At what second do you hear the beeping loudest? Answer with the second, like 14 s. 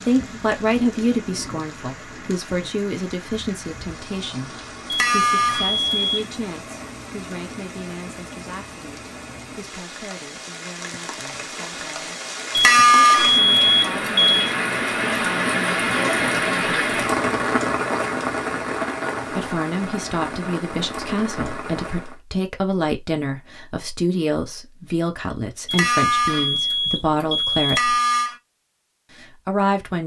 13 s.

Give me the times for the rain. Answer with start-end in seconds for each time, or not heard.
0.0-22.2.